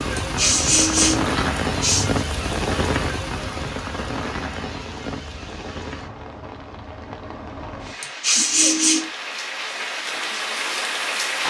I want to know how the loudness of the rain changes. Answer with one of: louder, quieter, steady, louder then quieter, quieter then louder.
quieter then louder.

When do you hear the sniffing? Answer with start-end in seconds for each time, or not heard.
0.1-2.2, 8.0-9.1.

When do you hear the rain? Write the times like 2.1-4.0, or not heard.
0.0-11.4.